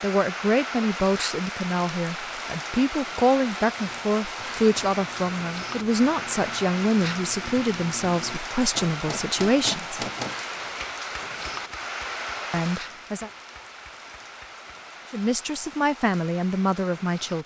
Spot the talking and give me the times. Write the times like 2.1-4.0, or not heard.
0.0-10.1, 12.5-13.3, 15.1-17.4.